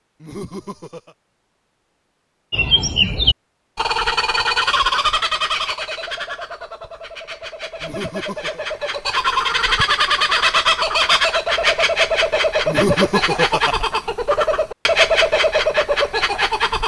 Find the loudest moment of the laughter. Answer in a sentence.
The volume of the laughter peaks at 13 seconds.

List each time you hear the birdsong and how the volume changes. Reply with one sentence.
The birdsong can be heard from 2.5 to 16.8 s, getting quieter then louder.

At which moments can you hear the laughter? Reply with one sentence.
The laughter can be heard from 0.2 to 1.1 s, from 7.8 to 8.6 s and from 12.7 to 13.8 s.